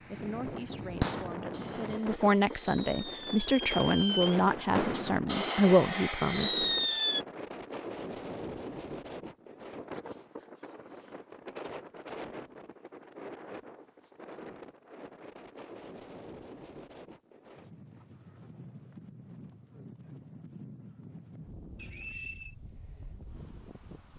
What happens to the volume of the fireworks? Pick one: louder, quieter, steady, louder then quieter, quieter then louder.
louder.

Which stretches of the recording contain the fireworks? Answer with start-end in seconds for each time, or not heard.
0.8-7.2.